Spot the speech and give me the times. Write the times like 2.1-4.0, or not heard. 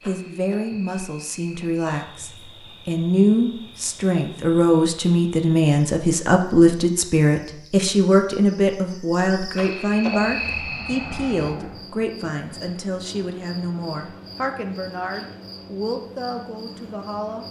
0.0-17.4.